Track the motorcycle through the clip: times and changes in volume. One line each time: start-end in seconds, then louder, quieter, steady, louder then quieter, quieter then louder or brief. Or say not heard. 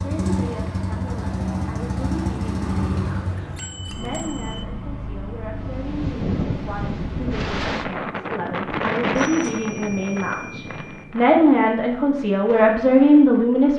0.0-7.8 quieter.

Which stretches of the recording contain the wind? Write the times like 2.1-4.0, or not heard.
5.5-13.7.